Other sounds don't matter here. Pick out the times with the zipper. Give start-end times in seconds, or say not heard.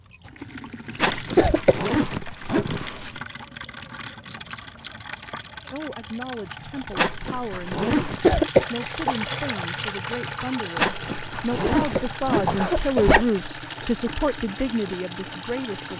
0.9-3.2, 7.0-8.3, 10.8-13.3.